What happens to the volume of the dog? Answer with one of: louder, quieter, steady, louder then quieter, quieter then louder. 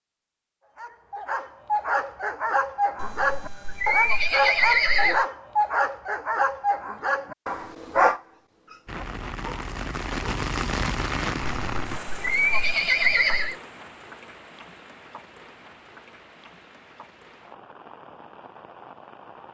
steady.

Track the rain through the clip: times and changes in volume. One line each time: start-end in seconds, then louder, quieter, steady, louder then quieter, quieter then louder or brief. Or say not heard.
8.8-19.4 quieter.